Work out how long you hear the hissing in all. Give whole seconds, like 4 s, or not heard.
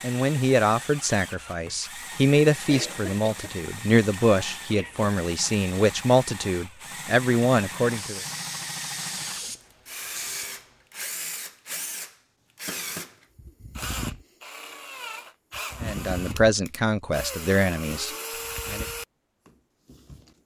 3 s.